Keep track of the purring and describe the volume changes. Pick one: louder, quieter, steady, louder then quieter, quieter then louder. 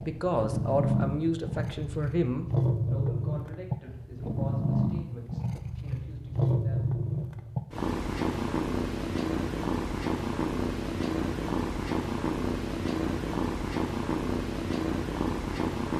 steady.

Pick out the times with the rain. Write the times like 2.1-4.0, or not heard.
not heard.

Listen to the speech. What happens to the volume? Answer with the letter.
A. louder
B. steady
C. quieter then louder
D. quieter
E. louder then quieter
D.